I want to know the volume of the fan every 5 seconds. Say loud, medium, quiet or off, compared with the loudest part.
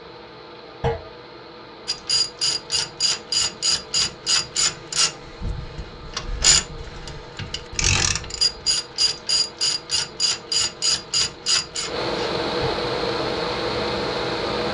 quiet, quiet, loud.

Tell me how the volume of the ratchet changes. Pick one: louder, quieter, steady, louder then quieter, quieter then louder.
steady.